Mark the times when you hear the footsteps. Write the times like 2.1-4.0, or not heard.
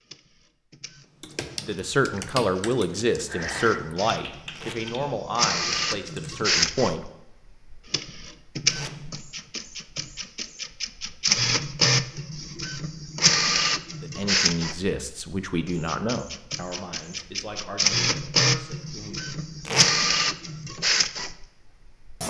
not heard.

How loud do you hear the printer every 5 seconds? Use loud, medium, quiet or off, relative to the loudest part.
quiet, loud, loud, loud, loud.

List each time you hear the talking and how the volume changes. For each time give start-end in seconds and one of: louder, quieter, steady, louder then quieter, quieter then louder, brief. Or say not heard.
1.6-7.0 quieter
14.0-19.4 quieter.